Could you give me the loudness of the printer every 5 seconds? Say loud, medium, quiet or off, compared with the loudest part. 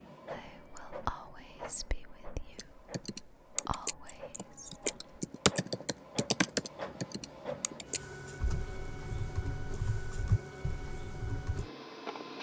medium, loud, loud.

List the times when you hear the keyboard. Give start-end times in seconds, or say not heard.
2.5-11.7.